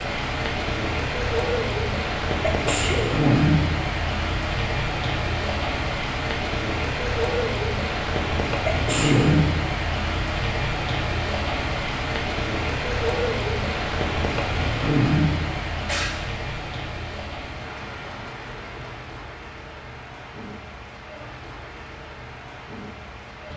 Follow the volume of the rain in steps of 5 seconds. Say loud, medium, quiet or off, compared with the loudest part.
loud, loud, loud, medium, quiet.